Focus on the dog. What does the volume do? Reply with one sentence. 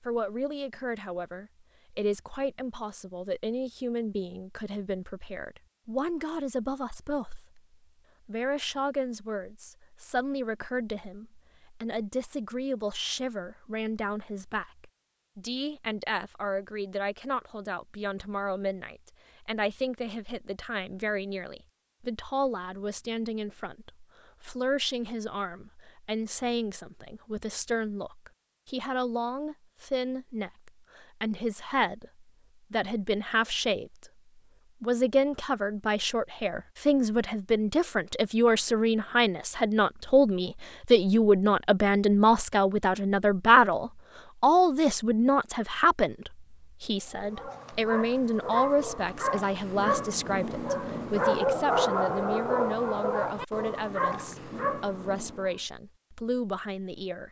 The loudness of the dog goes up, then down.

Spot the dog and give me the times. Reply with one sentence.
The dog can be heard from 47.0 to 55.6 s.